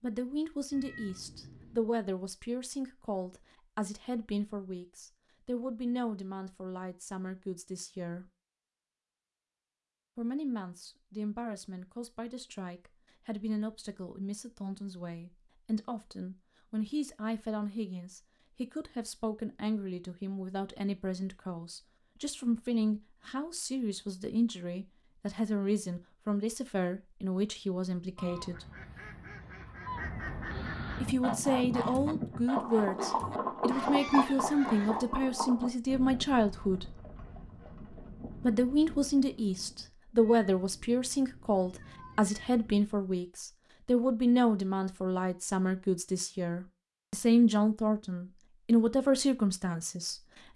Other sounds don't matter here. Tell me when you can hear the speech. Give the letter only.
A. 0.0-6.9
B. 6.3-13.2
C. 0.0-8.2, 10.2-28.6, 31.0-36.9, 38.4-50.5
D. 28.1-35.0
C.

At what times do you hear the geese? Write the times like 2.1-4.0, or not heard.
28.1-35.0.